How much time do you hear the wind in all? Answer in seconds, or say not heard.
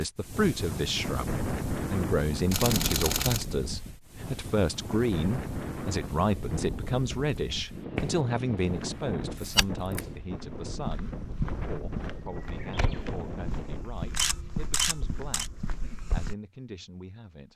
14 s.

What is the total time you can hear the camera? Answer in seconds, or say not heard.
4 s.